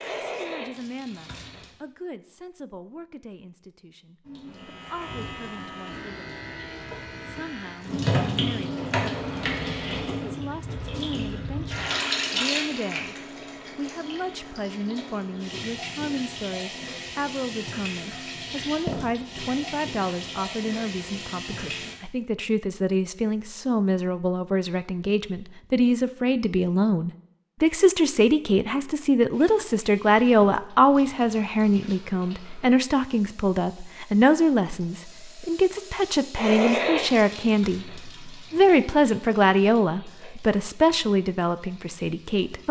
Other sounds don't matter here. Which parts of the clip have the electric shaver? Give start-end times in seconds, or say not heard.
4.5-8.1.